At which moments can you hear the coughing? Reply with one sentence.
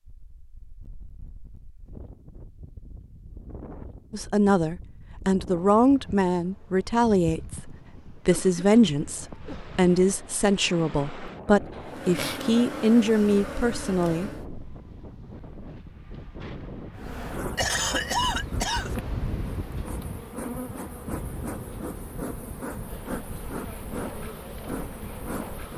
You can hear the coughing from 8.2 to 9.7 s and from 17.4 to 18.9 s.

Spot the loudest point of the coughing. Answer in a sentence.
The volume of the coughing peaks at 18 seconds.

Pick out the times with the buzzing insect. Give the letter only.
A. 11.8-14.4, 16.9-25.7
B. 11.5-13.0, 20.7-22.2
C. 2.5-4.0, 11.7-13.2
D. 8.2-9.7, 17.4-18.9
A.